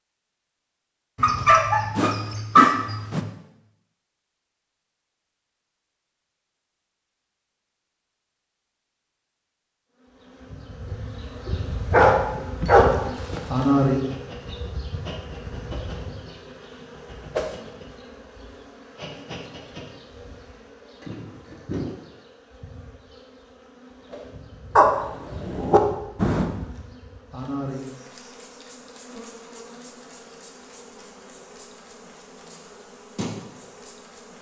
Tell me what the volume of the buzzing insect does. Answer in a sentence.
The loudness of the buzzing insect goes down.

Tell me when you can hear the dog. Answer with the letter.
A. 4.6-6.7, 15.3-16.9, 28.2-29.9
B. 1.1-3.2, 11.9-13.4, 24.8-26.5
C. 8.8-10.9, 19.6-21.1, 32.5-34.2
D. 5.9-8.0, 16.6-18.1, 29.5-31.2
B.